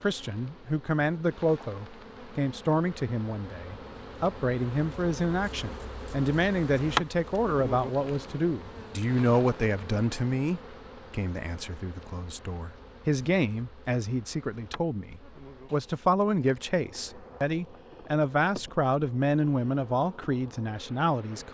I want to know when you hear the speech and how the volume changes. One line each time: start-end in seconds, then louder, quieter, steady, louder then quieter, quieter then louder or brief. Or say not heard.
0.0-21.4 steady.